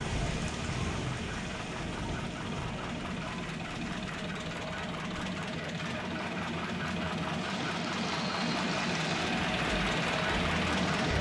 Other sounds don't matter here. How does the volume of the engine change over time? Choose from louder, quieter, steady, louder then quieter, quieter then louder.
louder.